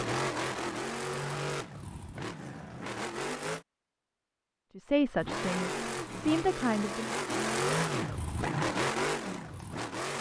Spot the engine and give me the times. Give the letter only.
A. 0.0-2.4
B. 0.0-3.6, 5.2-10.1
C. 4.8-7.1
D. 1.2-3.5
B.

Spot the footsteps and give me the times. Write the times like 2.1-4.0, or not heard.
not heard.